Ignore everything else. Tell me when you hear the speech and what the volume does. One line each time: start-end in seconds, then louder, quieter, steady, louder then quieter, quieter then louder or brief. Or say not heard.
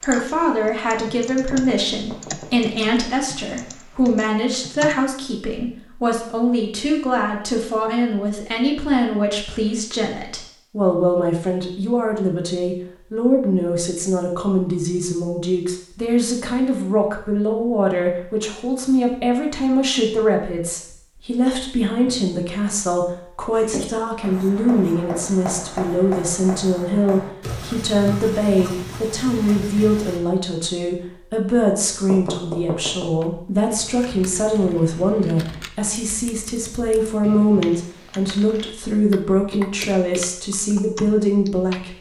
0.0-41.9 steady.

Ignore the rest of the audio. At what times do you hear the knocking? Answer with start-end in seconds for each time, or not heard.
1.5-2.5, 32.1-33.1.